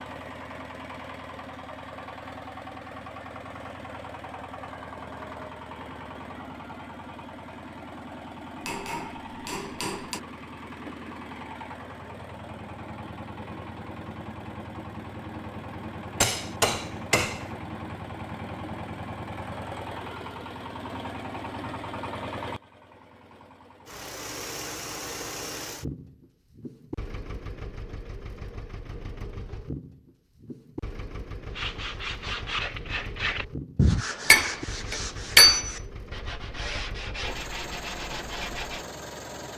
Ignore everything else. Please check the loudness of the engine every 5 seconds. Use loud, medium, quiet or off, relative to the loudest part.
loud, loud, loud, loud, loud, loud, medium, loud.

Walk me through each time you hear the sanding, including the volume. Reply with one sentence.
You can hear the sanding from 31.5 to 38.9 s, getting louder then quieter.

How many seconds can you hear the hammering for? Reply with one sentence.
The hammering can be heard for 4 seconds in total.